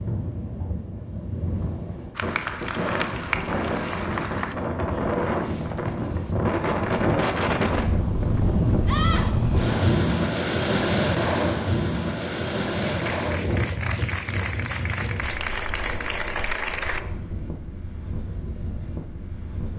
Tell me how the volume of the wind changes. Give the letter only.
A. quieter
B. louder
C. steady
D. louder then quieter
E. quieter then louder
D.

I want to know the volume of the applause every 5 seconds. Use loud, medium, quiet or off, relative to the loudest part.
loud, off, loud, loud.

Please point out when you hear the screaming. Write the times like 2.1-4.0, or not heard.
8.8-9.3.